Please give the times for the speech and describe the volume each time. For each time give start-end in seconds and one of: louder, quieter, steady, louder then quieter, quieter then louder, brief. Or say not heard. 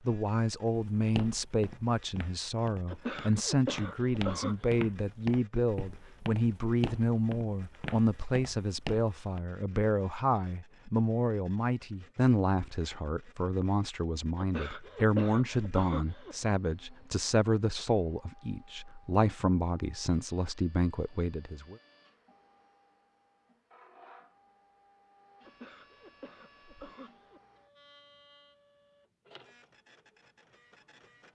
0.1-21.8 steady.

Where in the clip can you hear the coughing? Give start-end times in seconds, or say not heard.
2.9-4.8, 14.3-16.4, 25.4-27.4.